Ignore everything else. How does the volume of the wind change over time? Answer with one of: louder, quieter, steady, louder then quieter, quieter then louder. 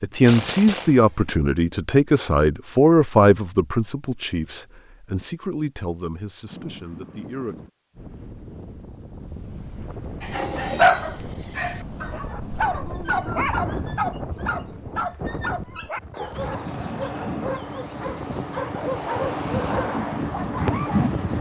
louder.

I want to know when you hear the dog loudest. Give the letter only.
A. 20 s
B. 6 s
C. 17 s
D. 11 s
D.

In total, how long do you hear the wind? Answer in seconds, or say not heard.
15 s.